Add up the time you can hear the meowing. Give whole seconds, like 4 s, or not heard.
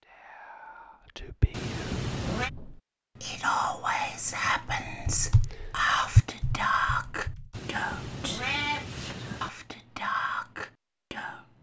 3 s.